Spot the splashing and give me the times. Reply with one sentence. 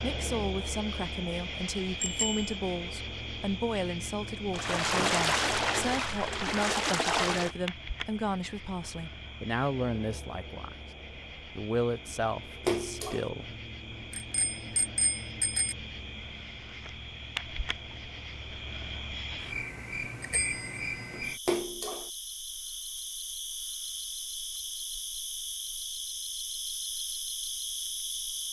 You can hear the splashing from 4.5 to 7.5 s, from 12.7 to 13.3 s and from 21.4 to 22.1 s.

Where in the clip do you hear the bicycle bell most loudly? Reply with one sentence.
The loudest moment of the bicycle bell is at 2 seconds.